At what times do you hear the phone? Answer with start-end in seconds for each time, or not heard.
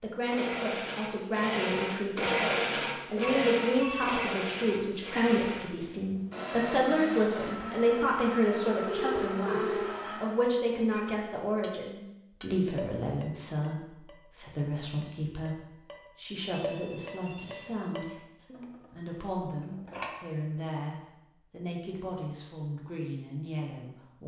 3.2-4.3, 8.8-9.9, 16.5-17.9.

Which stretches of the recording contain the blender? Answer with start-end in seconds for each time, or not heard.
0.0-10.4.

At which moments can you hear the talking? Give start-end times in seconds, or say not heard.
0.0-24.2.